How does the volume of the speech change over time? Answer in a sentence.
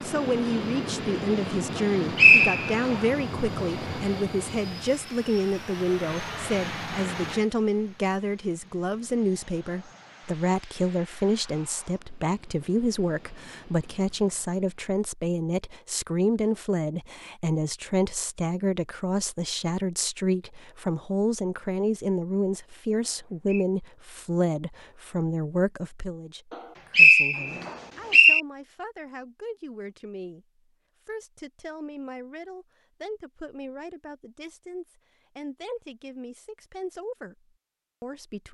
The loudness of the speech goes down.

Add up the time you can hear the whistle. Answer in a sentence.
The whistle can be heard for 3 seconds in total.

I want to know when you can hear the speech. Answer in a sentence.
The speech can be heard from 0.0 to 30.4 s and from 31.1 to 38.4 s.